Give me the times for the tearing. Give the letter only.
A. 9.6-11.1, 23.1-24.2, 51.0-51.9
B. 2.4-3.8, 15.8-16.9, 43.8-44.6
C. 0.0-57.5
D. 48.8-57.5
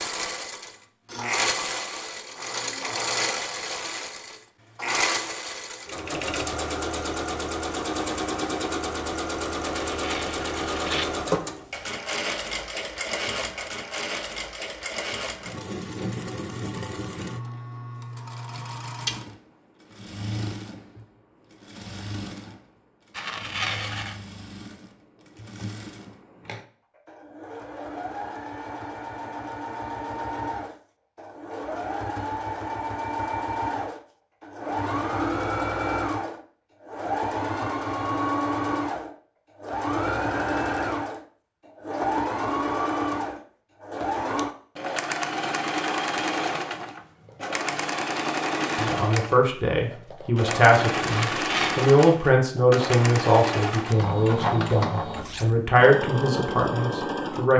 A.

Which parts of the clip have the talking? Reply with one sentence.
The talking can be heard from 48.8 to 57.5 s.